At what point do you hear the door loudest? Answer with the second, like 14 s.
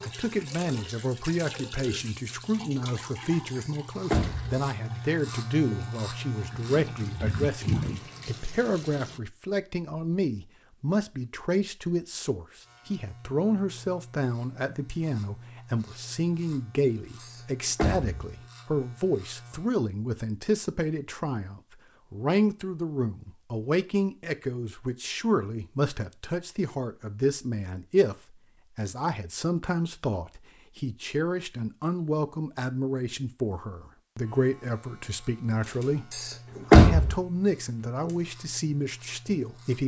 37 s.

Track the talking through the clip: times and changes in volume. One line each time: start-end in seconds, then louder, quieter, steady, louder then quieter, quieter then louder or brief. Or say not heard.
0.0-39.8 steady.